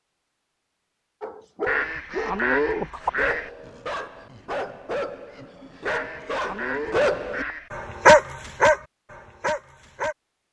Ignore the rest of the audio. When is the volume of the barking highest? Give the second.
8 s.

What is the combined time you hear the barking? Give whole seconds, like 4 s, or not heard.
9 s.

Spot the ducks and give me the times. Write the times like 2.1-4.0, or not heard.
1.6-3.5, 5.8-7.7.